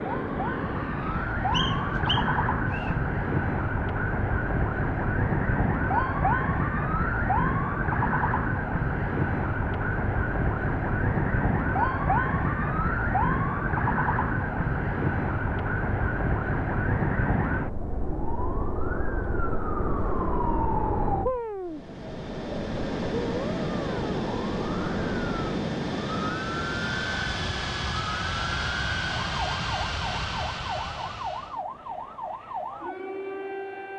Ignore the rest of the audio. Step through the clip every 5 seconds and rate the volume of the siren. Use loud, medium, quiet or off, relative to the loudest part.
loud, loud, loud, loud, medium, medium, medium.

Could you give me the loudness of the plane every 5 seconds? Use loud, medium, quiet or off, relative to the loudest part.
loud, off, off, off, loud, loud, medium.